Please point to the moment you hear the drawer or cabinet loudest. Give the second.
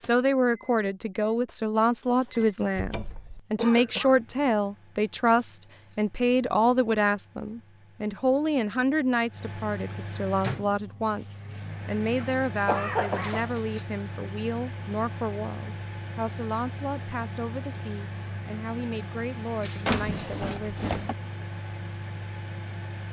20 s.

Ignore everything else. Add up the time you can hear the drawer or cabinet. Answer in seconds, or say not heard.
2 s.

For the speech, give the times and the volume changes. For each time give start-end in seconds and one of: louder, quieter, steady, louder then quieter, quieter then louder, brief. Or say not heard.
0.0-21.1 quieter.